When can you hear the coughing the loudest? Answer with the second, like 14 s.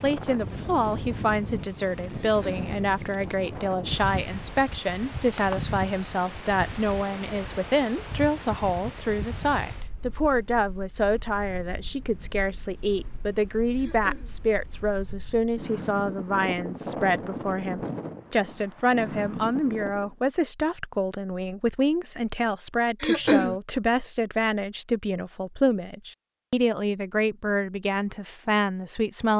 23 s.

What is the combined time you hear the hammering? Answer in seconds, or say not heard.
not heard.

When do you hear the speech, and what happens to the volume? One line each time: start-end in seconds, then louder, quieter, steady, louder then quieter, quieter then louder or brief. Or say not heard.
0.0-29.3 steady.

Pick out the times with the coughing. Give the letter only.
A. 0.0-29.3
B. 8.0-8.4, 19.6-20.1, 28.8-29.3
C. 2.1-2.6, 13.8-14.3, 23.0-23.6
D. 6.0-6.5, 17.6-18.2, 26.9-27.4
C.